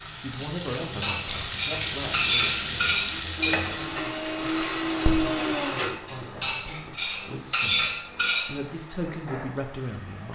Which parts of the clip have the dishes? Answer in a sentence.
You can hear the dishes from 0.8 to 3.6 s and from 6.0 to 8.6 s.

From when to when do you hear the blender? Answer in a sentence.
You can hear the blender from 3.4 to 6.3 s.